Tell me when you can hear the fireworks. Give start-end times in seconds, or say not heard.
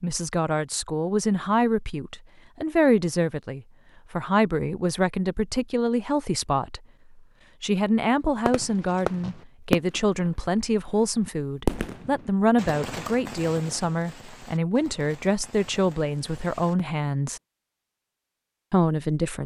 8.4-16.9.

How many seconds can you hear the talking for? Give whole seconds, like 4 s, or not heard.
17 s.